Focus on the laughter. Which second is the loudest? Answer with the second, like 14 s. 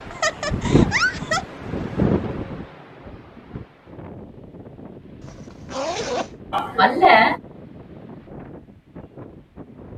7 s.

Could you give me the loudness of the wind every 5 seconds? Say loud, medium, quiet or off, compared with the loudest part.
loud, quiet.